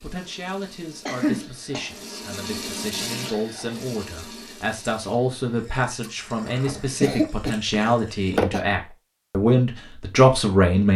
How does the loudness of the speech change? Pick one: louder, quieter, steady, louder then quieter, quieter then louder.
louder.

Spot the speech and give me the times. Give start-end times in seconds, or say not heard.
0.0-10.9.